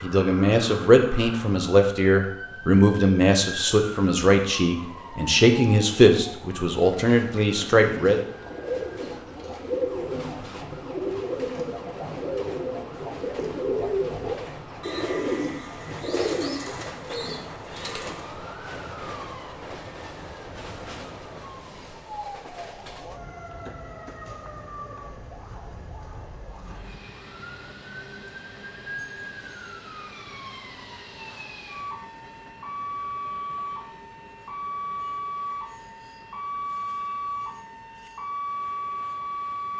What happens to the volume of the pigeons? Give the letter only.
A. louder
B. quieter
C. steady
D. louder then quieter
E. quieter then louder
C.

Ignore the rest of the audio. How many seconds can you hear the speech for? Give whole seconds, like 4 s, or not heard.
8 s.